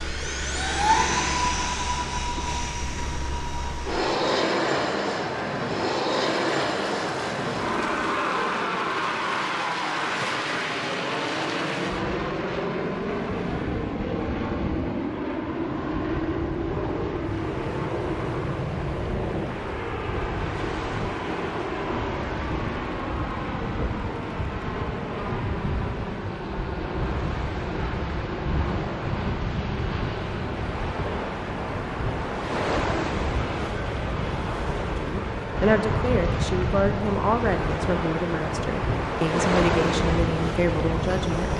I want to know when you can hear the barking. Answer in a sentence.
You can't hear the barking here.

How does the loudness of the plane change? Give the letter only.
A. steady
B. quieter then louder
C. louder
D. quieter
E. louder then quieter
D.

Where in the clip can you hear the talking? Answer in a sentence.
You can hear the talking from 35.0 to 41.5 s.